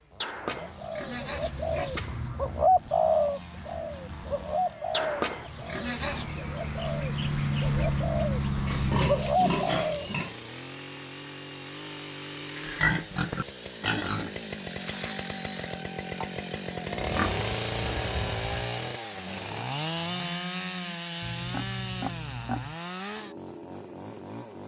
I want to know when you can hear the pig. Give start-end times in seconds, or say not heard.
0.2-2.2, 4.9-6.5, 8.7-10.3, 12.6-14.3, 17.0-18.4, 21.2-22.8.